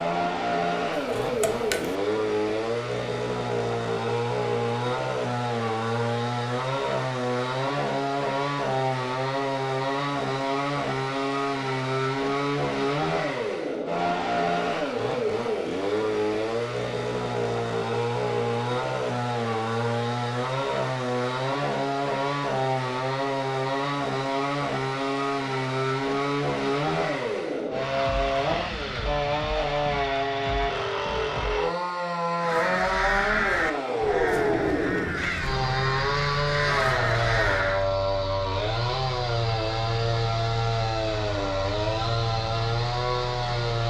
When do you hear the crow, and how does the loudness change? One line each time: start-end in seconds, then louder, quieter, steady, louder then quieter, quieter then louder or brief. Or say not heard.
32.4-37.9 quieter then louder.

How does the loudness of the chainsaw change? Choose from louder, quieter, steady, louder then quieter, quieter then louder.
steady.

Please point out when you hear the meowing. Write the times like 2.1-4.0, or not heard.
0.9-1.9.